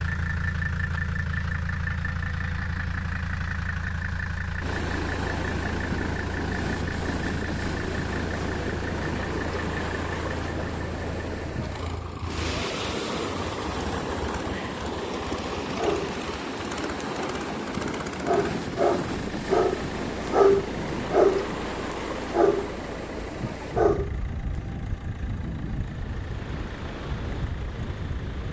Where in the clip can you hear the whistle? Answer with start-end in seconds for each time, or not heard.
not heard.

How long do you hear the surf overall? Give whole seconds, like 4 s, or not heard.
24 s.